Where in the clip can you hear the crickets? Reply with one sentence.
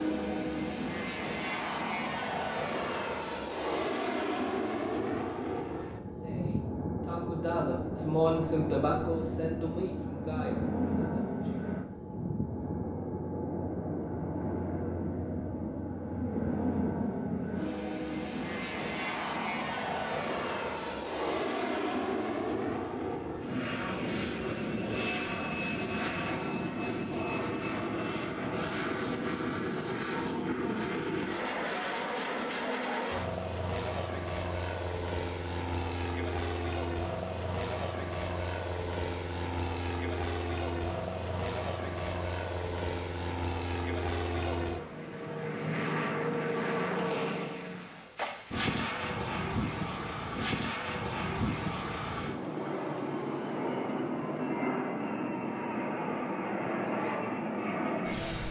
The crickets can't be heard in this clip.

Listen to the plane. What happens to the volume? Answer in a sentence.
The volume of the plane stays about the same.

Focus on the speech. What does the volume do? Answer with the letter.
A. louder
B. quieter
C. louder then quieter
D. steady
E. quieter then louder
C.